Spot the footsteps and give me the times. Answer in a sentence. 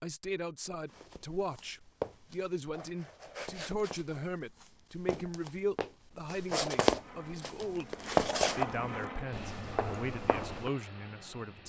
The footsteps can be heard from 0.8 to 10.7 s.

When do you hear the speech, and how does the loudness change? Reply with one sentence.
You can hear the speech from 0.0 to 11.6 s, at a steady volume.